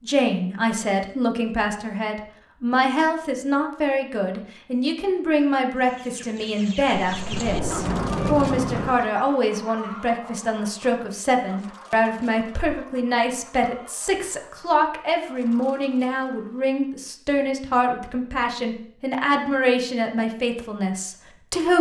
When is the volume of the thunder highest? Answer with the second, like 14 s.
8 s.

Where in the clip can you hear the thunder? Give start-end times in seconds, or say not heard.
7.0-8.9.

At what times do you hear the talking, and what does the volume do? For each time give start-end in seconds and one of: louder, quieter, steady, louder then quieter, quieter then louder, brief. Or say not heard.
0.0-21.7 steady.